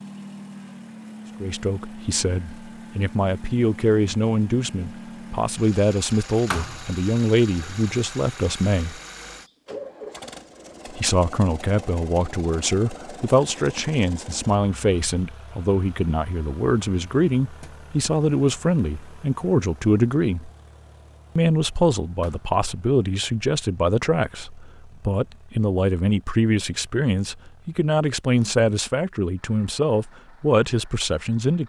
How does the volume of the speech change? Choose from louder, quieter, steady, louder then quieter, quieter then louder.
steady.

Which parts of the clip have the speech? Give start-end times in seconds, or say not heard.
1.4-9.0, 10.9-20.5, 21.4-31.6.